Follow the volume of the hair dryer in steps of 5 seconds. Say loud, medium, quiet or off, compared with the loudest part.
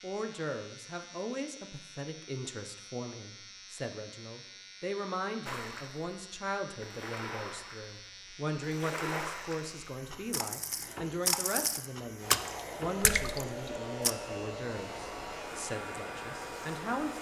off, off, loud, loud.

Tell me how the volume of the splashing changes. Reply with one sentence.
The loudness of the splashing goes up.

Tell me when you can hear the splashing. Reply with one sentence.
You can hear the splashing from 5.5 to 14.1 s.